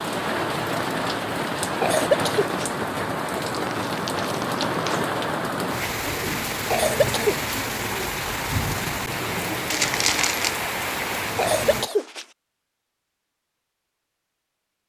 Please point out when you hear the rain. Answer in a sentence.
You can hear the rain from 0.0 to 11.9 s.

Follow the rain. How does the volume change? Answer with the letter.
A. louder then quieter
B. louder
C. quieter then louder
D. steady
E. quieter
D.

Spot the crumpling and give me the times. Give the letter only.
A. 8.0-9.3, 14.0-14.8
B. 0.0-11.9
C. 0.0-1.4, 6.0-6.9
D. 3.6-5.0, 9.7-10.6
D.